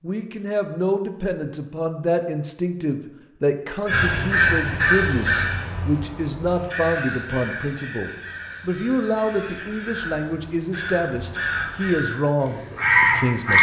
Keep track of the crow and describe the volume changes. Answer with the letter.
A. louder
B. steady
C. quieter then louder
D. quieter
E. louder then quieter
C.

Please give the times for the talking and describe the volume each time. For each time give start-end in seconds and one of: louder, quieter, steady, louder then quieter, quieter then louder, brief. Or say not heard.
0.0-13.5 steady.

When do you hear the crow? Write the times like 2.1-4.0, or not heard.
3.9-13.5.